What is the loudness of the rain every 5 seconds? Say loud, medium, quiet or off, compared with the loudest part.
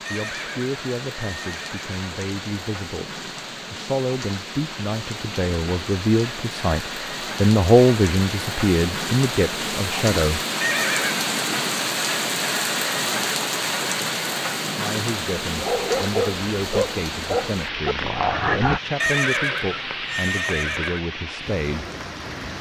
medium, medium, loud, medium, medium.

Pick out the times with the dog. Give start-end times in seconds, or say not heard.
15.6-18.8.